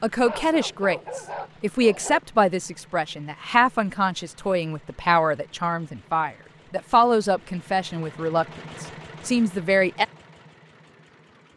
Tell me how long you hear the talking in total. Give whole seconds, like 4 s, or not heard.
10 s.